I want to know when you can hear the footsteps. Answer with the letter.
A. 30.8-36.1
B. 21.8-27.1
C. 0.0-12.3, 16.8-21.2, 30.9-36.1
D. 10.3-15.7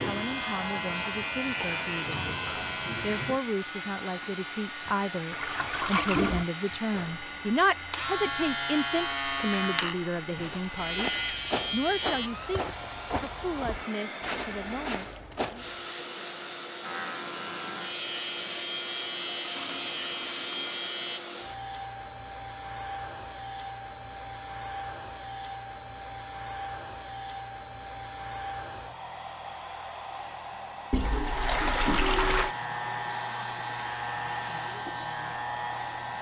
D.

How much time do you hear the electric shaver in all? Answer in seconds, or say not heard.
22 s.